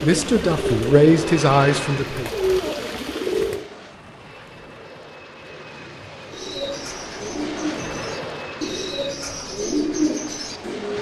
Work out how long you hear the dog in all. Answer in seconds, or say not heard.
not heard.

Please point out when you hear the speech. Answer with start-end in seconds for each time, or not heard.
0.0-2.3.